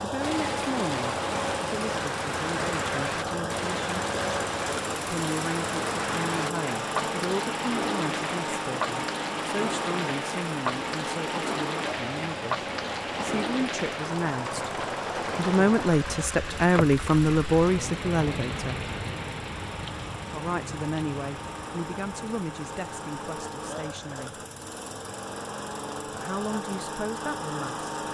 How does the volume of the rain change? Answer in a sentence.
The loudness of the rain goes down.